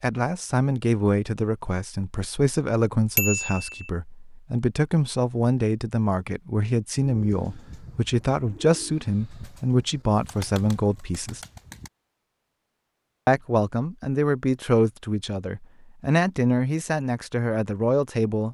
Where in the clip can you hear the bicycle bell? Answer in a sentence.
You can hear the bicycle bell from 3.1 to 3.9 s.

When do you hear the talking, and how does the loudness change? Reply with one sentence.
The talking can be heard from 0.0 to 11.4 s, at a steady volume; and from 13.2 to 18.4 s, at a steady volume.